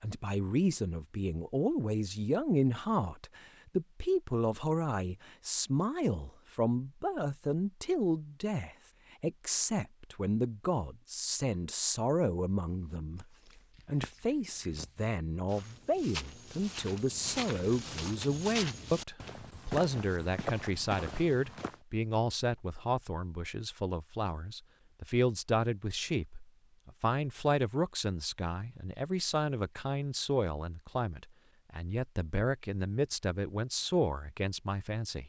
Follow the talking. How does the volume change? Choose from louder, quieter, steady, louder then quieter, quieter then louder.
steady.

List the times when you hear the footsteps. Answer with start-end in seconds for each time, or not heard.
12.9-21.8.